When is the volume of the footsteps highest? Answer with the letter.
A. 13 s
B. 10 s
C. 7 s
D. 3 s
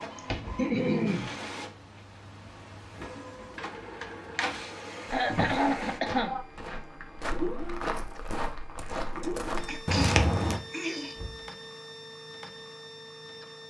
B.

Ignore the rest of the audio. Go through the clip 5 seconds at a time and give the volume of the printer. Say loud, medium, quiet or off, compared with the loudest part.
loud, loud, medium.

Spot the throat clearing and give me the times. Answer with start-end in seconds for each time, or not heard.
0.1-1.3, 5.1-6.5, 9.2-11.2.